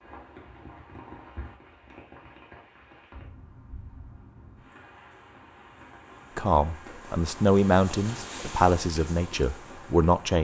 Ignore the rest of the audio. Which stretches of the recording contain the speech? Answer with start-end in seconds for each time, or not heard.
6.3-10.3.